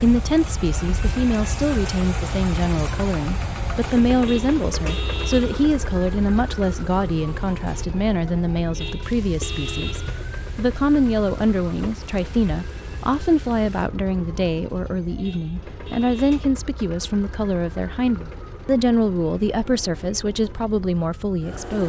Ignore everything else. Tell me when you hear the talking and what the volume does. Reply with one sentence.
The talking can be heard from 0.0 to 21.8 s, at a steady volume.